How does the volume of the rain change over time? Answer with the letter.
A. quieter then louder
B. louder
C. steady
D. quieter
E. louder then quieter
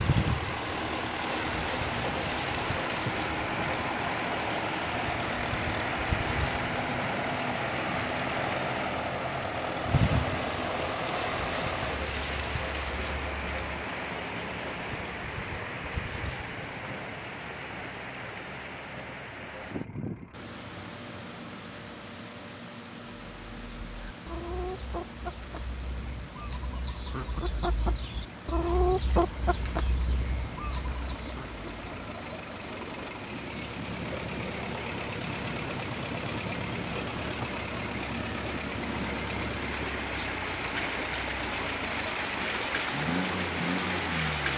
A.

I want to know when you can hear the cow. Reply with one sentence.
The cow can't be heard in this clip.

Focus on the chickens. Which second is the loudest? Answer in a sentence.
The volume of the chickens peaks at 29 seconds.